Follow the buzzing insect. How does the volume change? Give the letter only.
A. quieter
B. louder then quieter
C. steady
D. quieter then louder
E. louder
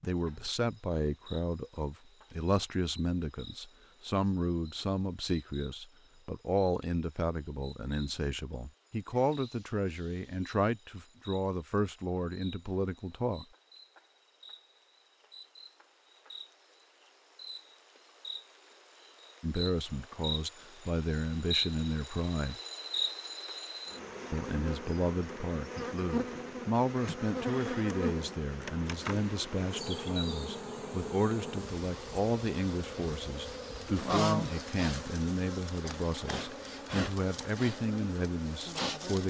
E.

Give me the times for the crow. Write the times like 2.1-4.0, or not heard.
not heard.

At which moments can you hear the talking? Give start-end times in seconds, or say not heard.
0.0-13.4, 19.4-22.6, 24.3-39.2.